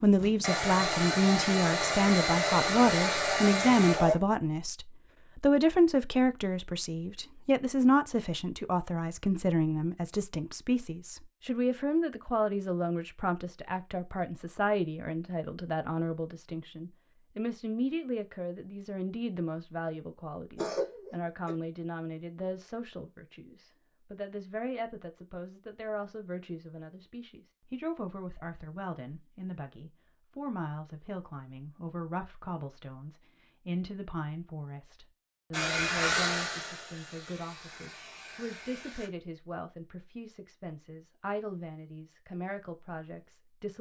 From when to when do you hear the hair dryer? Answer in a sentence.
The hair dryer can be heard from 0.0 to 4.2 s and from 35.5 to 39.1 s.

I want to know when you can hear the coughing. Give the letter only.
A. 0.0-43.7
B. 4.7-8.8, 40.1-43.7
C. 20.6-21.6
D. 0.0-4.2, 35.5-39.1
C.